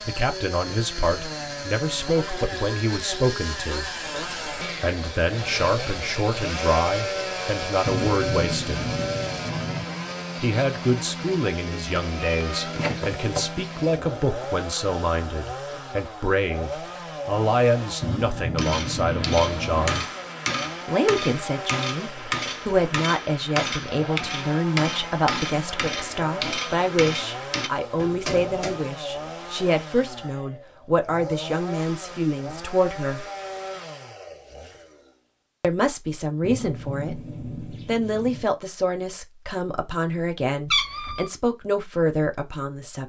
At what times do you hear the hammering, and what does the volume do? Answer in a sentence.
The hammering can be heard from 18.6 to 28.8 s, at a steady volume.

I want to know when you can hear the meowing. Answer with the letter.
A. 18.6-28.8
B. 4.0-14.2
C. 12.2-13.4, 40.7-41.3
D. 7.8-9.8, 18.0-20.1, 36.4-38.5
C.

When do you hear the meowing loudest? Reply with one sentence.
The volume of the meowing peaks at 41 seconds.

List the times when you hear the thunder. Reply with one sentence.
The thunder can be heard from 7.8 to 9.8 s, from 18.0 to 20.1 s and from 36.4 to 38.5 s.